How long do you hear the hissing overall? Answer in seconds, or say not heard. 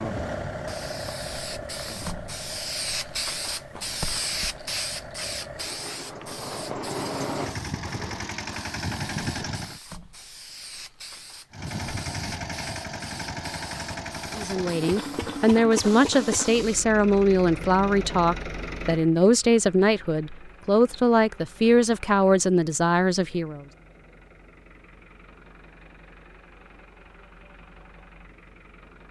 17 s.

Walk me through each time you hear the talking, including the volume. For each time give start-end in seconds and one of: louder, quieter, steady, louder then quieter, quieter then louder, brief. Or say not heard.
14.3-23.6 steady.